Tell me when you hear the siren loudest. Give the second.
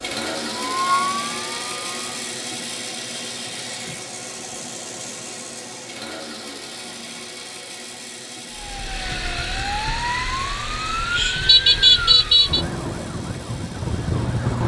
12 s.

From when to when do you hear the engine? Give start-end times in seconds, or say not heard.
0.0-14.6.